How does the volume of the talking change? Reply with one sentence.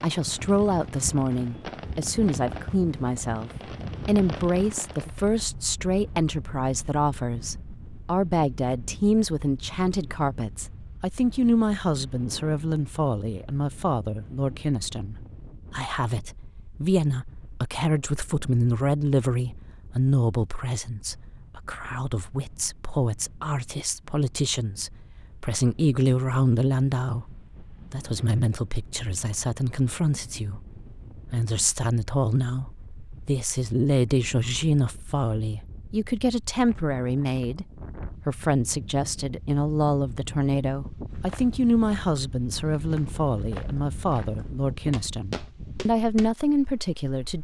The volume of the talking stays about the same.